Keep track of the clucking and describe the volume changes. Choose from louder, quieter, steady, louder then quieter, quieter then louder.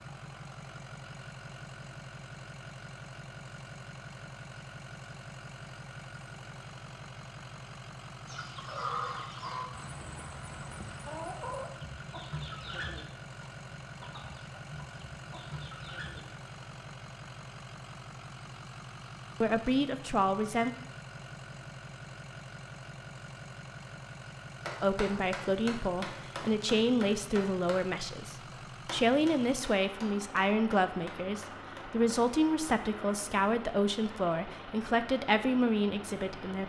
quieter.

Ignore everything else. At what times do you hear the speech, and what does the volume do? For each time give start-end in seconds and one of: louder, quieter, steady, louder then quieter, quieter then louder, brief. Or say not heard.
19.4-20.7 brief
24.8-36.6 steady.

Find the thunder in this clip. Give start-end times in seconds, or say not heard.
not heard.